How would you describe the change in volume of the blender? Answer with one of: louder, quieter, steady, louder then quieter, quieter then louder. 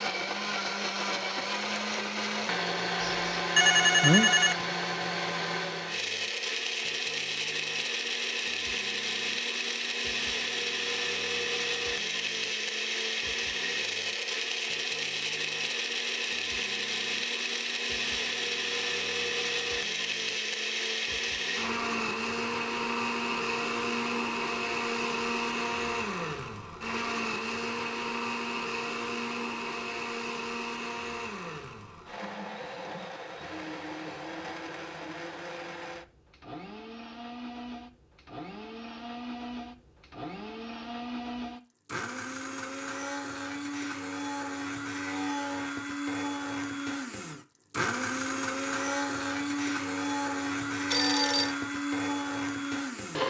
quieter then louder.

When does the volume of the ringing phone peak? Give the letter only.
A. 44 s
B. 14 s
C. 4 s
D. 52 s
C.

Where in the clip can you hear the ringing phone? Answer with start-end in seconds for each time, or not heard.
3.0-4.7, 50.9-51.5.